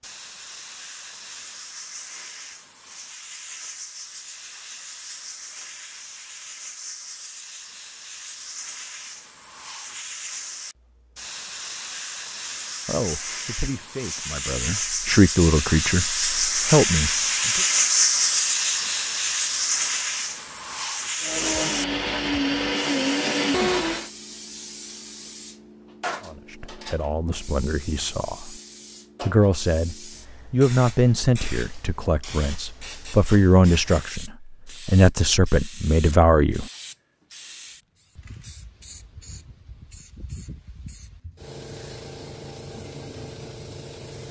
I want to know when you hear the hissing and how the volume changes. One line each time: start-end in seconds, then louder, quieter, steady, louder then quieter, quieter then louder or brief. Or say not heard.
0.0-44.2 louder then quieter.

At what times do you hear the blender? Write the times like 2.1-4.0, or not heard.
21.2-24.1.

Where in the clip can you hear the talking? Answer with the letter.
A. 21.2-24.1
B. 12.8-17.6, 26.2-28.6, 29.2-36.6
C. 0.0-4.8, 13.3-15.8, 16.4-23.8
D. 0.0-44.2
B.